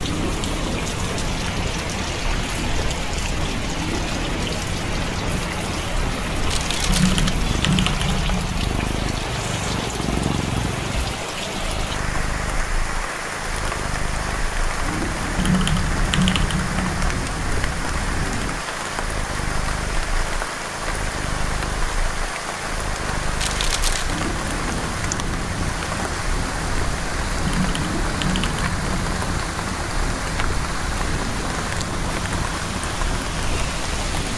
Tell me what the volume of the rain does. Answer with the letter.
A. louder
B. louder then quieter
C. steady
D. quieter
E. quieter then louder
C.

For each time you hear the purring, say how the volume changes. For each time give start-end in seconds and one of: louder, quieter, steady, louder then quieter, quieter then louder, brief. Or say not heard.
0.0-34.3 steady.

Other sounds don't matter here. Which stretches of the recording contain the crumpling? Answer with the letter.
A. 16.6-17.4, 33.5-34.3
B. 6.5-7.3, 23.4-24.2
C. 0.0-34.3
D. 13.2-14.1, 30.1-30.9
B.